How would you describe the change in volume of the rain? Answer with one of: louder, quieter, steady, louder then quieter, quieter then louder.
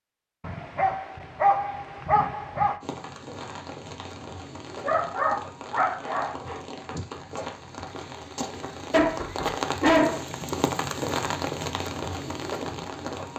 louder.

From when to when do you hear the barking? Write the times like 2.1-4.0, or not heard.
0.5-2.8, 4.8-6.6, 8.9-10.2.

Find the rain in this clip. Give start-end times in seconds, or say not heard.
2.8-13.3.